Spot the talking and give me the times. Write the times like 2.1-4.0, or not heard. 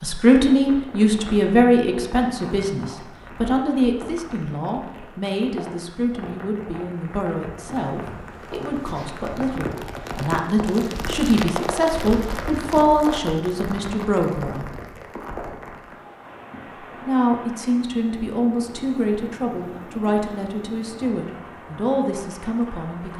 0.0-14.7, 17.1-23.1.